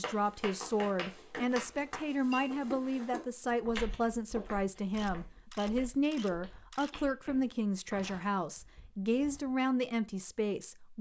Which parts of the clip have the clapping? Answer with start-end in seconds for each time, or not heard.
0.0-2.0.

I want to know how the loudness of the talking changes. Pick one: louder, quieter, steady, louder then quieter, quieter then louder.
steady.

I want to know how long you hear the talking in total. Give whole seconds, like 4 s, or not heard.
11 s.